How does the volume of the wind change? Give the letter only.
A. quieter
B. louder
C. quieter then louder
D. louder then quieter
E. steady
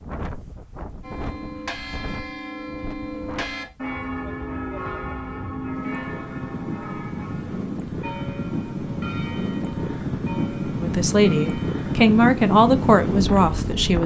B.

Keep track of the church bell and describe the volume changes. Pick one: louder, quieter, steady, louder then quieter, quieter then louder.
quieter.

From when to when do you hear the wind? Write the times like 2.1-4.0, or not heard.
0.0-14.0.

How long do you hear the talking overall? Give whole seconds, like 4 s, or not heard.
3 s.